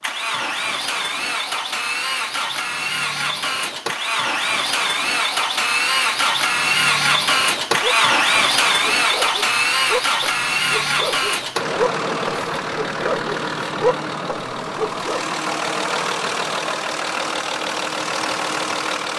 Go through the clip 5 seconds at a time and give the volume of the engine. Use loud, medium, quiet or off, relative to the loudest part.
medium, loud, medium, medium.